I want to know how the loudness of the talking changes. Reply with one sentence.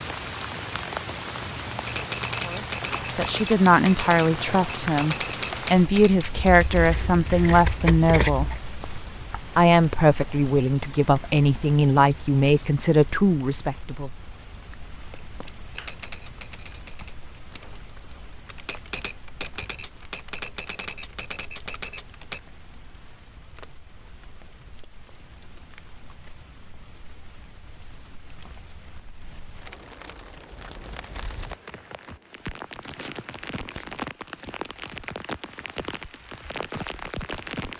The volume of the talking stays about the same.